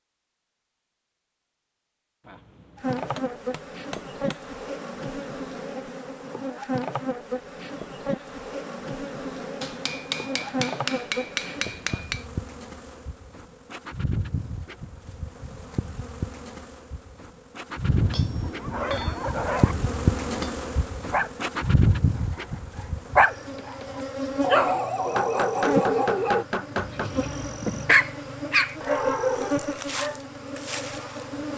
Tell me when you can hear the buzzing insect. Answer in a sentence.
You can hear the buzzing insect from 2.8 to 31.5 s.